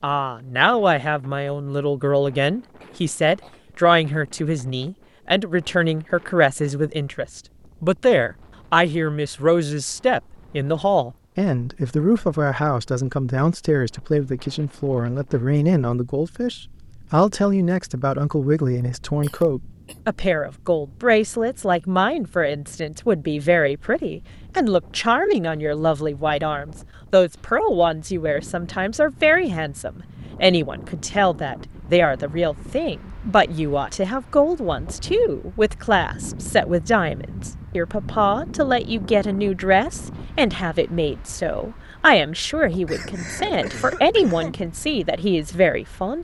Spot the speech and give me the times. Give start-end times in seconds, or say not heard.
0.0-46.1.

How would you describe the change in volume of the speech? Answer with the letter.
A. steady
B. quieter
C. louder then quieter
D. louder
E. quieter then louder
A.